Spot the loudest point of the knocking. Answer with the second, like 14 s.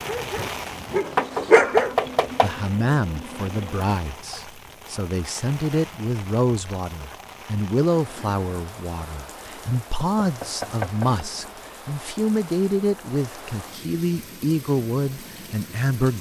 2 s.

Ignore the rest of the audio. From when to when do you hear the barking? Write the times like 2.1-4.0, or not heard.
0.0-1.9.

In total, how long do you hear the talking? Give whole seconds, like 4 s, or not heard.
14 s.